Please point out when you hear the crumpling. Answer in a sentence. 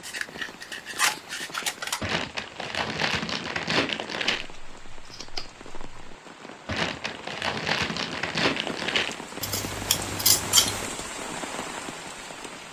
You can hear the crumpling from 2.0 to 4.5 s and from 6.7 to 9.2 s.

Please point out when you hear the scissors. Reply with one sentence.
You can hear the scissors from 0.0 to 2.0 s, from 4.4 to 6.2 s and from 9.4 to 10.8 s.